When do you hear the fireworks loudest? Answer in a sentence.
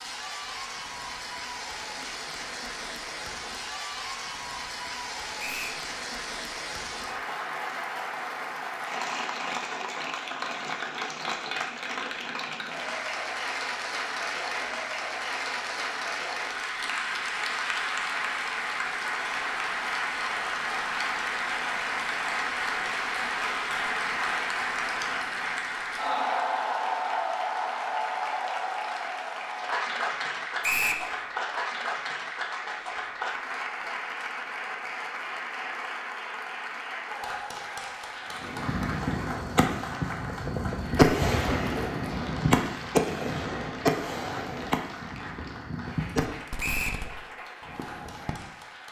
The volume of the fireworks peaks at 41 seconds.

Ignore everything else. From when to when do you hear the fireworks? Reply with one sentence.
The fireworks can be heard from 38.3 to 48.4 s.